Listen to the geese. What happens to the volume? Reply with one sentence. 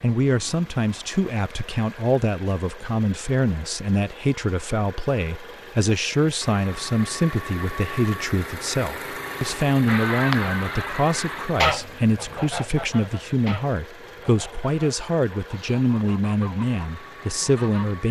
The loudness of the geese goes down.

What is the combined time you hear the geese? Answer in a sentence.
The geese can be heard for 8 seconds in total.